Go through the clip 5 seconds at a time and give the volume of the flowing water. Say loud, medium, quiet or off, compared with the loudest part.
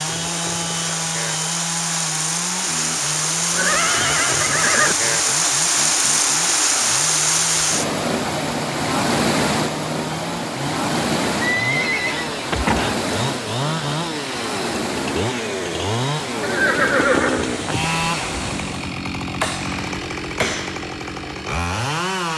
loud, loud, medium, medium, off.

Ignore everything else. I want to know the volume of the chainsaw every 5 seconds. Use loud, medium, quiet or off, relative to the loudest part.
medium, medium, loud, loud, loud.